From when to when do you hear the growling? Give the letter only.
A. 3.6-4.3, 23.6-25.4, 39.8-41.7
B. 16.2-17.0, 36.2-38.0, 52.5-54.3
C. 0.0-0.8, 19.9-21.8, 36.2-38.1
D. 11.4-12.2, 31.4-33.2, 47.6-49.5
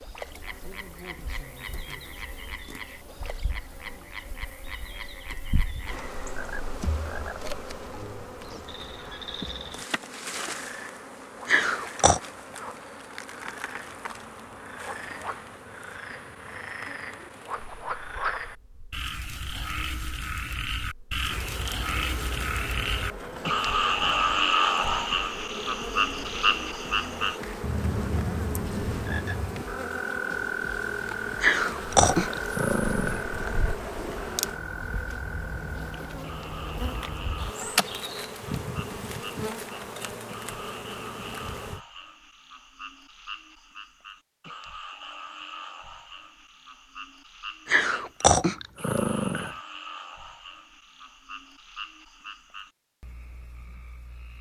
D.